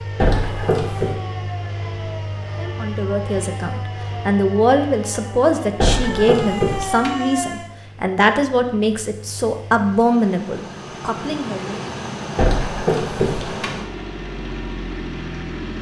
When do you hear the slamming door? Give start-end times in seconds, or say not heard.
0.2-1.1, 5.8-7.1, 12.3-13.7.